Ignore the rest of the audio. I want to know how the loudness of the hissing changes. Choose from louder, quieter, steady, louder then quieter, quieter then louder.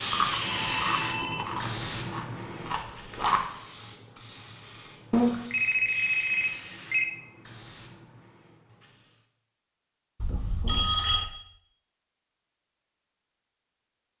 quieter.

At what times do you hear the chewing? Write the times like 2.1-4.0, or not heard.
0.0-3.4.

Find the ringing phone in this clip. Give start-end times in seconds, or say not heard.
0.4-1.5, 5.1-7.0, 10.2-11.3.